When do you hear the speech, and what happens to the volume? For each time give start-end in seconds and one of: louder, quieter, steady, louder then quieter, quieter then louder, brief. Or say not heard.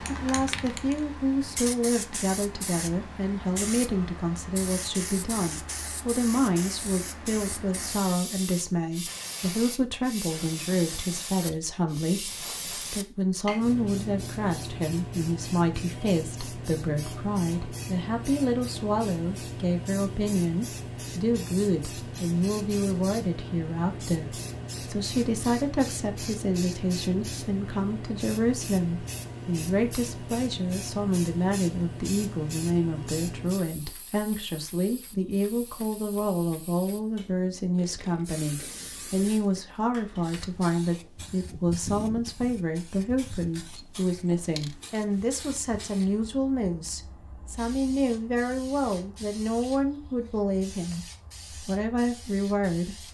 0.0-51.0 steady
51.6-53.1 brief.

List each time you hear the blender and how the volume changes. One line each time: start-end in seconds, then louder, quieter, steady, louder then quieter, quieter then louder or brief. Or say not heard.
not heard.